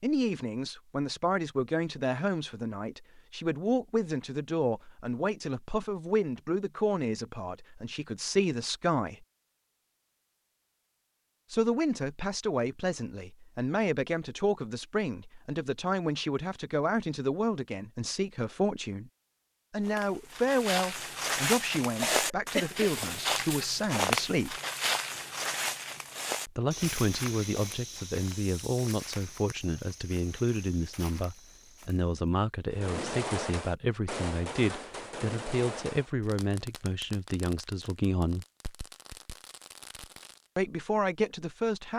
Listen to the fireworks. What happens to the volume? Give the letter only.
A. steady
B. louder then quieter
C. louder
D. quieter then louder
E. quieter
E.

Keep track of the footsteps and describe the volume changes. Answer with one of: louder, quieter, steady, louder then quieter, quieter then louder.
quieter.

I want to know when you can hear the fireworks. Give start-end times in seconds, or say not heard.
32.7-40.5.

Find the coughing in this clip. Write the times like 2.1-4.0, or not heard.
22.0-22.9.